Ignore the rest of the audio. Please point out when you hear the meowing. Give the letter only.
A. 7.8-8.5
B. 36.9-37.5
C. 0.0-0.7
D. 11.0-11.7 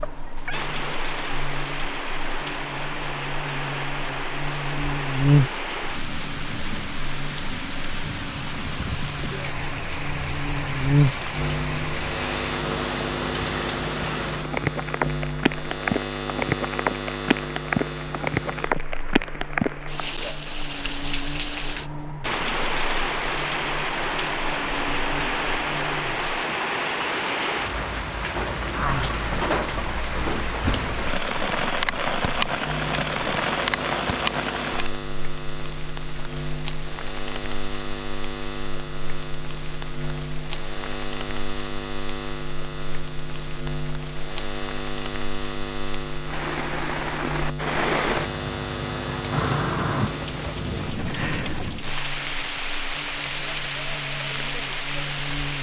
C.